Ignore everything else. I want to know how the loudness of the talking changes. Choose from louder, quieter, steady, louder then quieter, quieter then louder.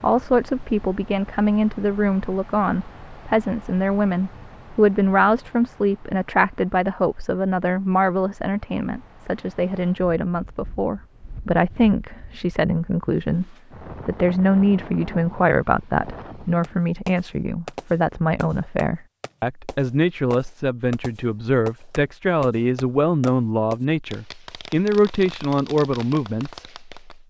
steady.